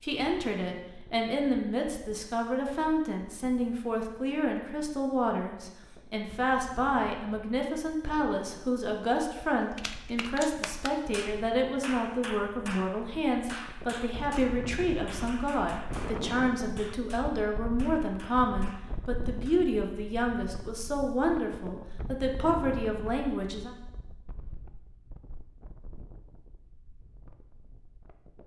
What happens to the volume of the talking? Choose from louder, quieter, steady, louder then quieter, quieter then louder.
steady.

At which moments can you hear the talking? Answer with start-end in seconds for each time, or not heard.
0.0-23.7.